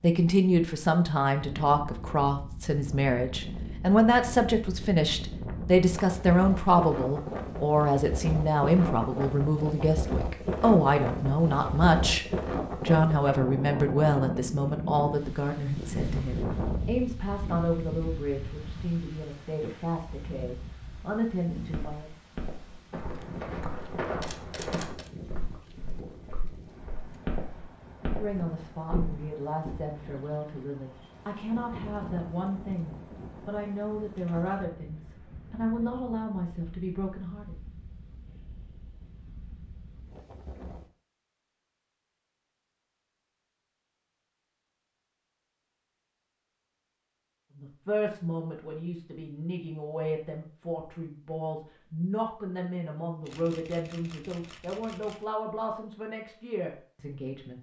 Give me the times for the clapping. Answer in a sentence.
The clapping can't be heard in this clip.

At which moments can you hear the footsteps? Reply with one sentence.
The footsteps can be heard from 21.7 to 29.8 s.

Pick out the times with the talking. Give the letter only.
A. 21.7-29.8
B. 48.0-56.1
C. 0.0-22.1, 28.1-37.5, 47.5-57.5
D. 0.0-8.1
C.